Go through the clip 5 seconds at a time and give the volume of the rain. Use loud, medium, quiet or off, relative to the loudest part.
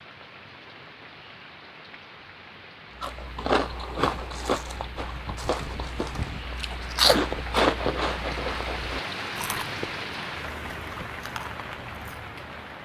medium, loud, loud.